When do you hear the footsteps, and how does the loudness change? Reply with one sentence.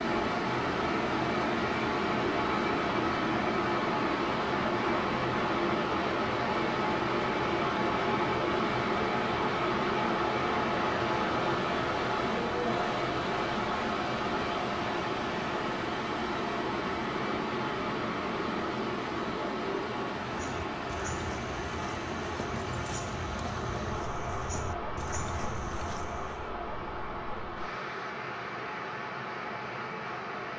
You can hear the footsteps from 20.3 to 26.5 s, at a steady volume.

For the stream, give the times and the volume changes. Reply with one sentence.
The stream can be heard from 0.0 to 30.5 s, getting quieter.